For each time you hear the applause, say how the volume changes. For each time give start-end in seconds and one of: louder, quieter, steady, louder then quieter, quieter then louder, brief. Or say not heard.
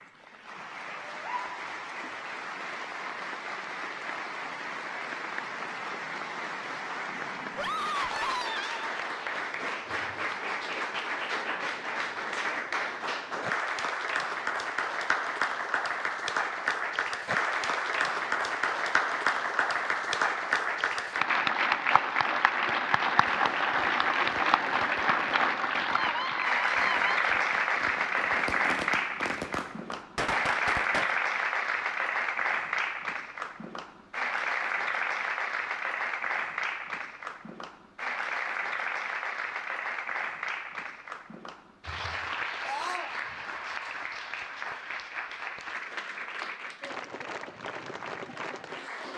0.0-49.1 louder then quieter.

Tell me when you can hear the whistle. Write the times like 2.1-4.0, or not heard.
not heard.